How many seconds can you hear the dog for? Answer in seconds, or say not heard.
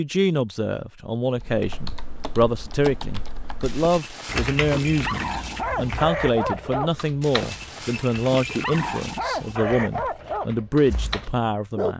8 s.